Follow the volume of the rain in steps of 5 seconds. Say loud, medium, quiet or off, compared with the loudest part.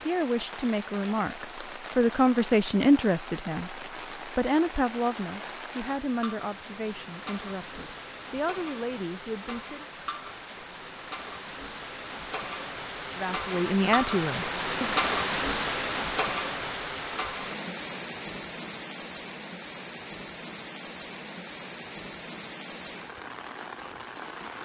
medium, medium, loud, loud, medium.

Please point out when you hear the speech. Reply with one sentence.
The speech can be heard from 0.0 to 9.8 s and from 13.2 to 14.9 s.